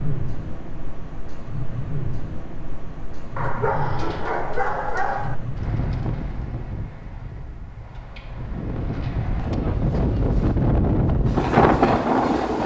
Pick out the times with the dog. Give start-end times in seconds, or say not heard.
3.4-5.3.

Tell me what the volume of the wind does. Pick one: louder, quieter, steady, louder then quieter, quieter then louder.
louder.